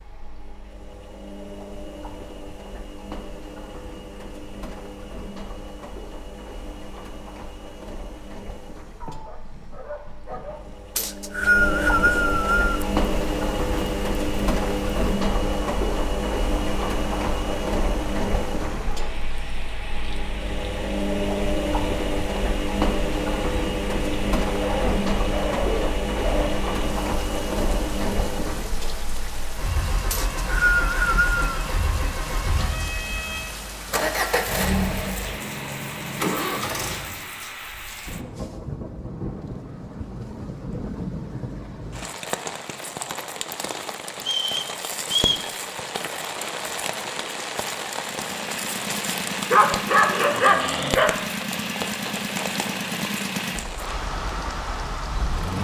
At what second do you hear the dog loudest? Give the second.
50 s.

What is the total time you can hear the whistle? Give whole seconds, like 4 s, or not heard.
4 s.